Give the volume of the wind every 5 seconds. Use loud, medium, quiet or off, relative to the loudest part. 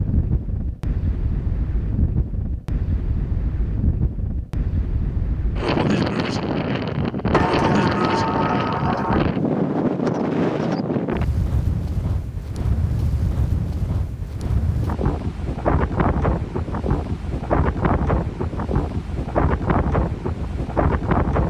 medium, loud, loud, loud, loud.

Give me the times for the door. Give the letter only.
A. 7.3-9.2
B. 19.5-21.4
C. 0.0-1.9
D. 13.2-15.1
A.